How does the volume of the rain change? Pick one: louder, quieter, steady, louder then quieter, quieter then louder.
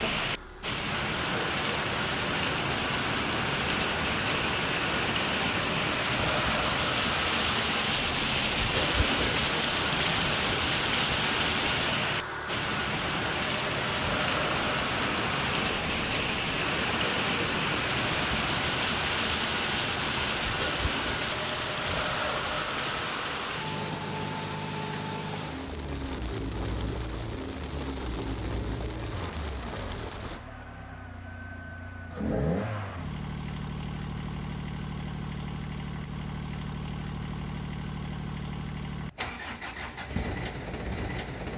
quieter.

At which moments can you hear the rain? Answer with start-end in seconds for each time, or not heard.
0.0-30.4.